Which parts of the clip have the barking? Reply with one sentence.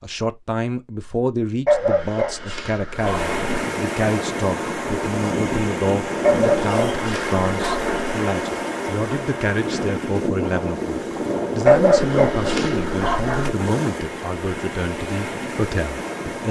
The barking can be heard from 1.6 to 3.5 s, from 6.2 to 7.9 s and from 11.7 to 13.6 s.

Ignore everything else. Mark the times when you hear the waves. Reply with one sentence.
The waves can be heard from 2.9 to 16.4 s.